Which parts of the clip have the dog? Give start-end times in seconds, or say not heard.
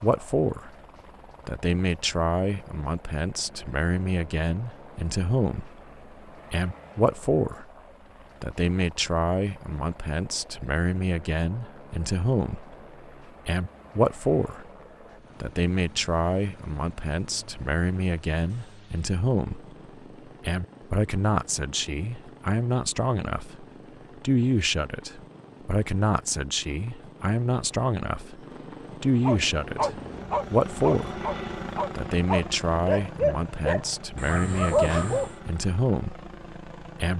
29.2-35.4.